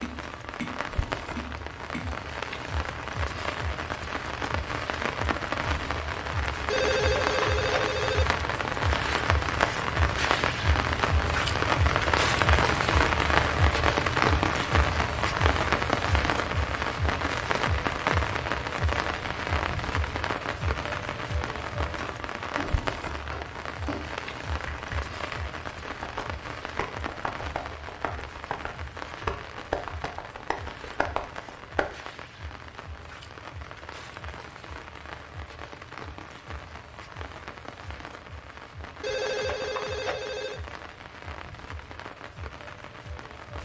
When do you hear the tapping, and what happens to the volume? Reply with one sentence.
You can hear the tapping briefly from 0.0 to 2.3 s; and from 22.0 to 31.9 s, getting louder.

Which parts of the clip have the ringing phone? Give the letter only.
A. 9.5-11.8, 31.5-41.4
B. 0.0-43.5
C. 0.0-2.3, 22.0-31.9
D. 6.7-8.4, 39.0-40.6
D.